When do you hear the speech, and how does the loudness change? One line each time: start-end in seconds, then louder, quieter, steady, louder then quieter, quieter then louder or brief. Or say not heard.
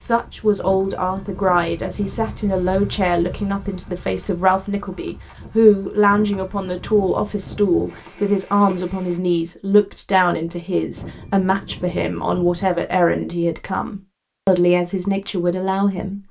0.0-16.2 steady.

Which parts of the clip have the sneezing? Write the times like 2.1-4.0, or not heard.
not heard.